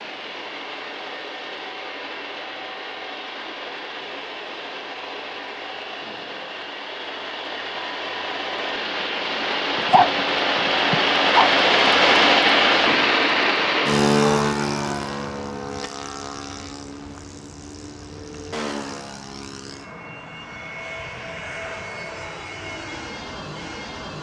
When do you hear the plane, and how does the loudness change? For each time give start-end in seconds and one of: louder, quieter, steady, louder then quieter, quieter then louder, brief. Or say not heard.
0.0-24.1 louder then quieter.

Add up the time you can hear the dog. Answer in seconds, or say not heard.
2 s.